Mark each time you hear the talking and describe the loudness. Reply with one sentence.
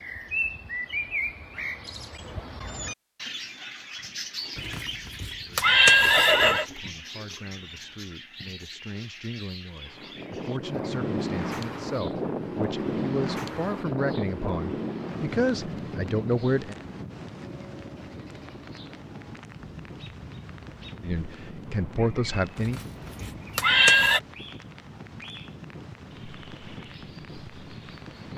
The talking can be heard from 5.5 to 16.8 s, getting louder; and briefly from 21.0 to 22.8 s.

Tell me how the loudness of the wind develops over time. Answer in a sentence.
The loudness of the wind goes down.